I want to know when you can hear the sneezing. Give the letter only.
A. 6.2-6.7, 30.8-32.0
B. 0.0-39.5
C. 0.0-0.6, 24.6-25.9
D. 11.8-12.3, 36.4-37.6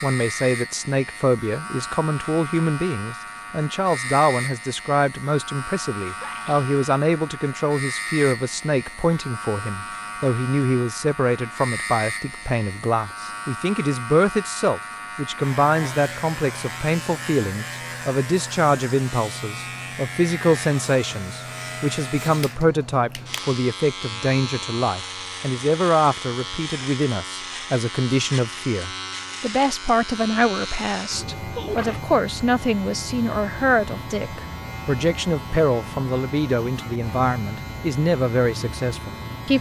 A.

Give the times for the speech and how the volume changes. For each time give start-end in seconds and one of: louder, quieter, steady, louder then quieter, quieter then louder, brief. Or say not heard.
0.0-39.5 steady.